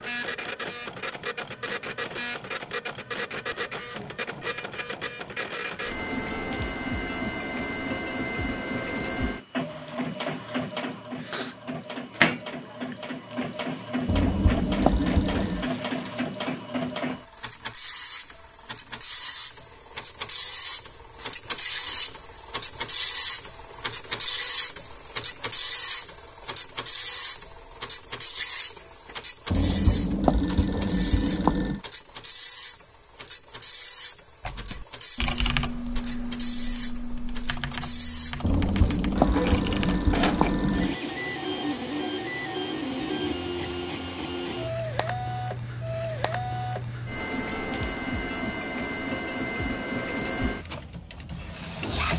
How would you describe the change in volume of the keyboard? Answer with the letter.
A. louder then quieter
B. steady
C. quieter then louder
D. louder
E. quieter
E.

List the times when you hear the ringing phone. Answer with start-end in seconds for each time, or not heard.
14.1-15.7, 29.5-31.8, 38.4-41.0.